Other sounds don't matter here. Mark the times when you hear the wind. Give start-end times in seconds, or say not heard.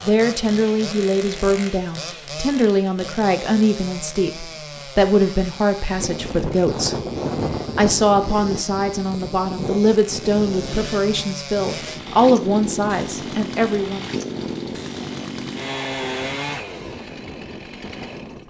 6.0-18.4.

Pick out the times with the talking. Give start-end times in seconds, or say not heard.
0.0-7.0, 7.8-14.1.